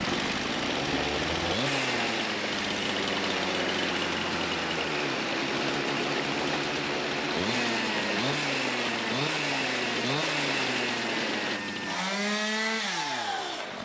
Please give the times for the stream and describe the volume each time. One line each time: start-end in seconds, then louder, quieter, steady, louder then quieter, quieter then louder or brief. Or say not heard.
0.0-11.6 steady.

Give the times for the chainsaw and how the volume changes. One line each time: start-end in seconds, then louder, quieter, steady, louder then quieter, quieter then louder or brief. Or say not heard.
0.0-13.8 steady.